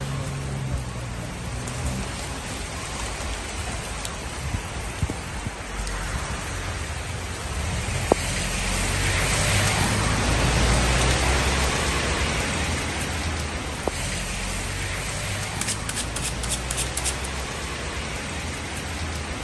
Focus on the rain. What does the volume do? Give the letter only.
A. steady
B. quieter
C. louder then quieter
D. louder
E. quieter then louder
C.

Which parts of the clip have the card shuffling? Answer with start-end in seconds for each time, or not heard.
15.4-17.2.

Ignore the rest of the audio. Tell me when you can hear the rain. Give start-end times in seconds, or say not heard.
0.0-19.3.